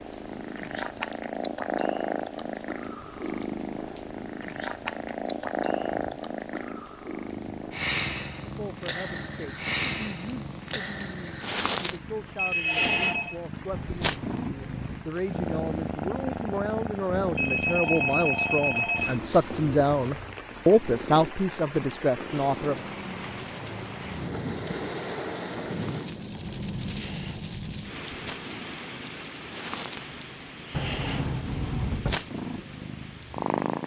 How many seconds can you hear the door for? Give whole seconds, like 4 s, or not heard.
3 s.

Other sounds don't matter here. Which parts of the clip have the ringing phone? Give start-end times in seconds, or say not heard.
12.3-13.3, 17.4-19.2.